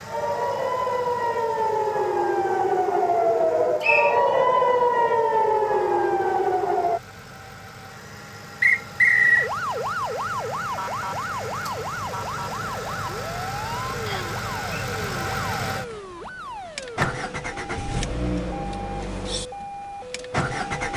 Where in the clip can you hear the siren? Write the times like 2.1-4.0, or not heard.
0.0-7.0, 9.2-20.9.